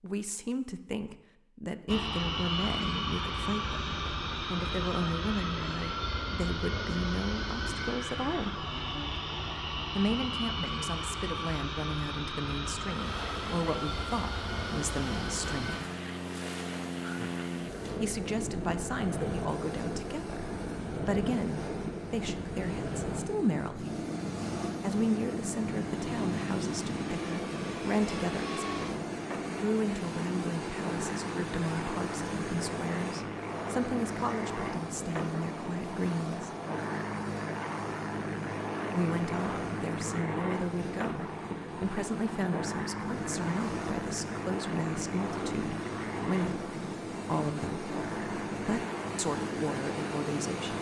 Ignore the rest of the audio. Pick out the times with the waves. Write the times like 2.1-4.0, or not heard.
12.9-50.7.